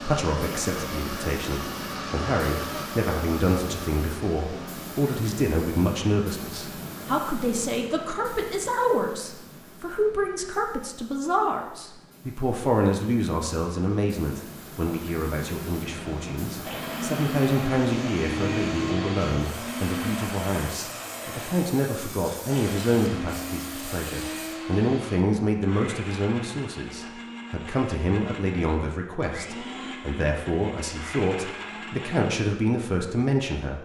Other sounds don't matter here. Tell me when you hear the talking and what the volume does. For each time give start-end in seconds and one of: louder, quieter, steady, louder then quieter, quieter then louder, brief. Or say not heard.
0.0-33.8 steady.